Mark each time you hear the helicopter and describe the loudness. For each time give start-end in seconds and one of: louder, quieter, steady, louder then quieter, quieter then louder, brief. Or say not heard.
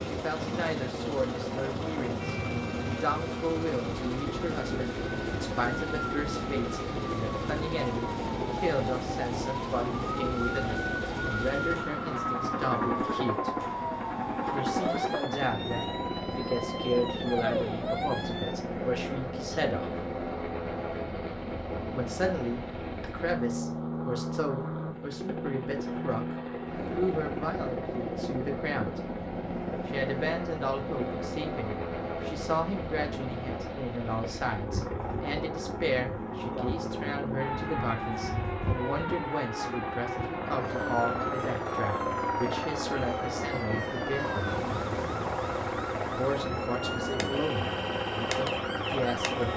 0.0-49.5 steady.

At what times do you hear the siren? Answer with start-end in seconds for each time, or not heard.
2.1-18.6, 37.4-49.5.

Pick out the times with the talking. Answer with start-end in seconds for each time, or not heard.
0.1-13.5, 14.5-20.0, 21.9-29.0, 29.9-44.6, 46.1-49.5.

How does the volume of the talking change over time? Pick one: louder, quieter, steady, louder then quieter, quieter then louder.
steady.